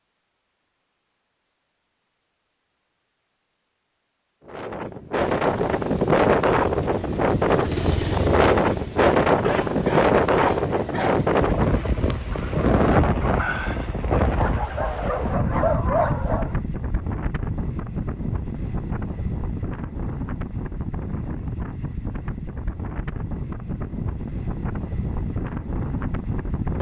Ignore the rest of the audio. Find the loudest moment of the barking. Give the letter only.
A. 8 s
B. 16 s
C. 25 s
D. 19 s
B.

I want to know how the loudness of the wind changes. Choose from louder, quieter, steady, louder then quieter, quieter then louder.
quieter.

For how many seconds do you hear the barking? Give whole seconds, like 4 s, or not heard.
4 s.